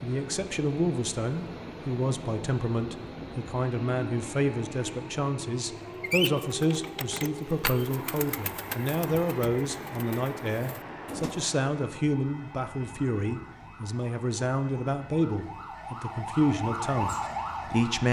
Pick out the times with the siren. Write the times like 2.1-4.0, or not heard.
11.8-18.0.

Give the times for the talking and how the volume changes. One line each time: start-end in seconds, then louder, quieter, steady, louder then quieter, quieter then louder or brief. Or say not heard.
0.0-18.0 steady.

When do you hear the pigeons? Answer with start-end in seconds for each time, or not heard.
6.0-11.5.